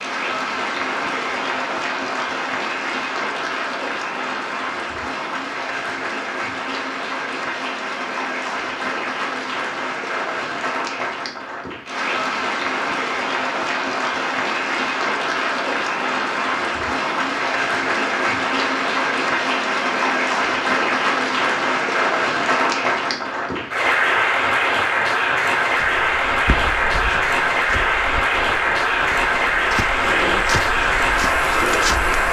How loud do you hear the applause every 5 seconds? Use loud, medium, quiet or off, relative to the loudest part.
medium, medium, medium, loud, loud, loud, loud.